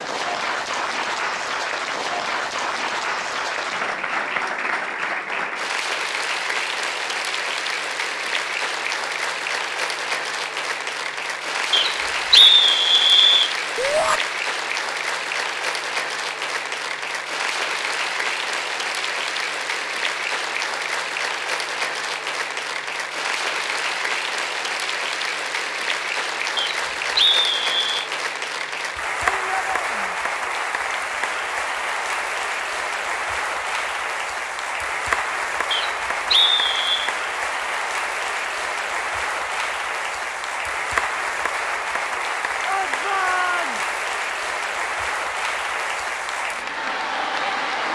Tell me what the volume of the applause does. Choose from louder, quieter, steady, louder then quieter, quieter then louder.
steady.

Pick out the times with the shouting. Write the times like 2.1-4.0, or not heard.
13.8-14.2, 29.2-30.2, 42.6-43.9.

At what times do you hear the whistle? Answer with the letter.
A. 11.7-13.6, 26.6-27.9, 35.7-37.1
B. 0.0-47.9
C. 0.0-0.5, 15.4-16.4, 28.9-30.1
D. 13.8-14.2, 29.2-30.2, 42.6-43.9
A.